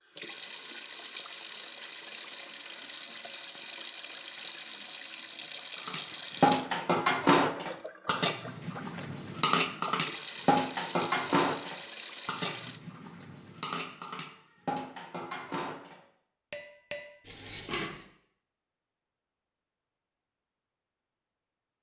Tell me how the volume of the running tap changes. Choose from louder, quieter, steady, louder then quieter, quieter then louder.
quieter then louder.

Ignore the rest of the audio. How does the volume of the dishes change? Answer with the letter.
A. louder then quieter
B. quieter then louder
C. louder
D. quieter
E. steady
D.